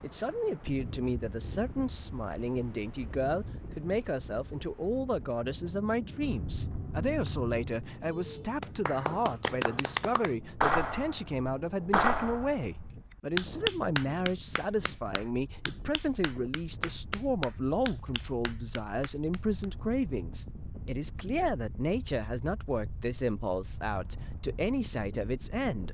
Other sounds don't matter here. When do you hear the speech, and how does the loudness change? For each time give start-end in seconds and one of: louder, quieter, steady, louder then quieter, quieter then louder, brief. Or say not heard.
0.0-25.8 steady.